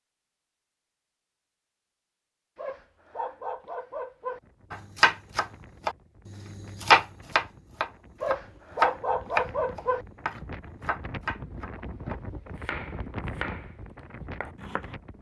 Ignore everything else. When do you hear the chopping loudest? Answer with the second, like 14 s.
7 s.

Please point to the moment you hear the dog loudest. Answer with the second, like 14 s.
9 s.